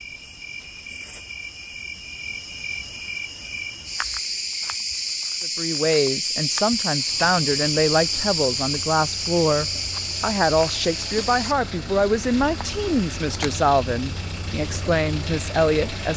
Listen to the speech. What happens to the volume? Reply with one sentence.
The loudness of the speech stays about the same.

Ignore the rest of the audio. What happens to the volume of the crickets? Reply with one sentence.
The volume of the crickets goes up, then down.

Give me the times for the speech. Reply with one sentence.
You can hear the speech from 5.4 to 16.1 s.